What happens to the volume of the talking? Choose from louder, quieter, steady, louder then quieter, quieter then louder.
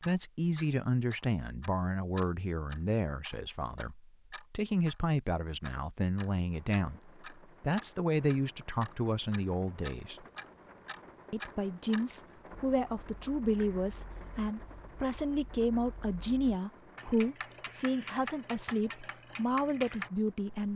steady.